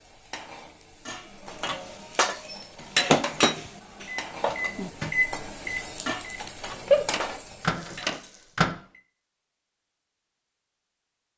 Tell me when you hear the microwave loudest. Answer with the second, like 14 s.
7 s.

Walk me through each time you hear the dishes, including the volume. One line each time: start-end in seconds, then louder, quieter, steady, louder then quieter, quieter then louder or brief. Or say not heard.
1.1-8.2 louder then quieter.